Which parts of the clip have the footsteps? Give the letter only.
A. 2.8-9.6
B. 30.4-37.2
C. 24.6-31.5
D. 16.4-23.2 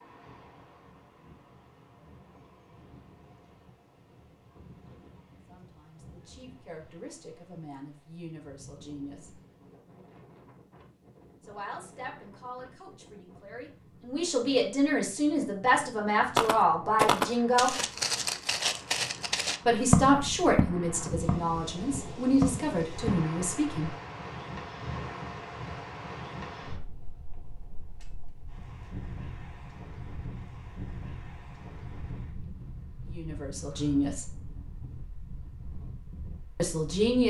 D.